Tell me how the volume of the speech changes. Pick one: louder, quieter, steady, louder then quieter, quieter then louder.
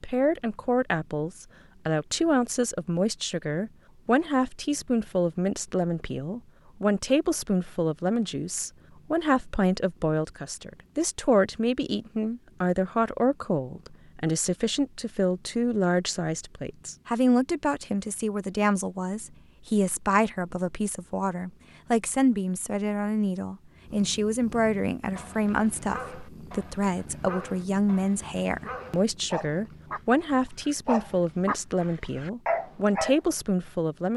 steady.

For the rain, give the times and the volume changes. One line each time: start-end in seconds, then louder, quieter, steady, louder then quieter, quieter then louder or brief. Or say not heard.
not heard.